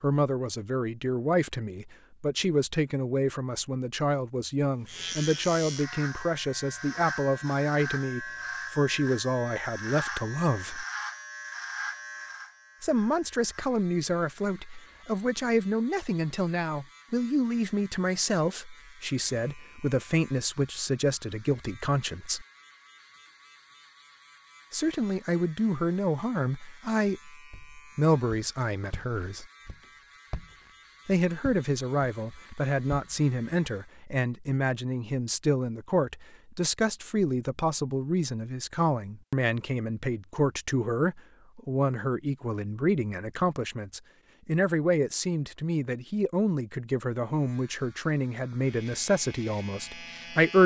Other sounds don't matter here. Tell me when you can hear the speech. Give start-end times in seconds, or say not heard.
0.0-10.8, 12.8-22.4, 24.7-29.4, 31.1-50.6.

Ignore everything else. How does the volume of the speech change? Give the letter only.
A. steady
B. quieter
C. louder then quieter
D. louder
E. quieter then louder
A.